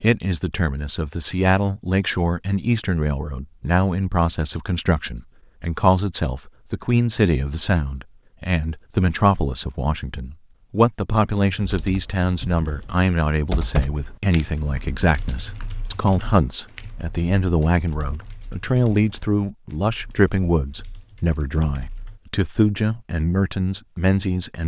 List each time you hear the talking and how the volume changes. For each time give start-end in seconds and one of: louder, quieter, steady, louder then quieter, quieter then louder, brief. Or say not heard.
0.0-24.6 steady.